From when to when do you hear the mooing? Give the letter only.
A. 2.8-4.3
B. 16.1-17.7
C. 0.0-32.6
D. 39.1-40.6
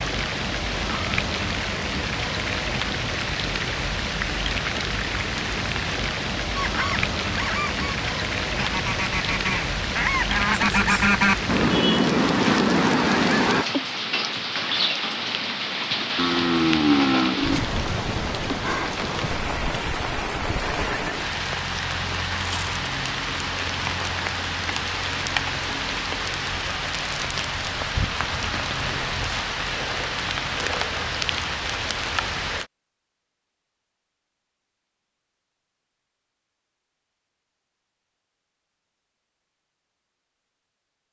B.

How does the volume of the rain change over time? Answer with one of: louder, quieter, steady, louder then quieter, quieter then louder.
steady.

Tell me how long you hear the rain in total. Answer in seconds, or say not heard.
33 s.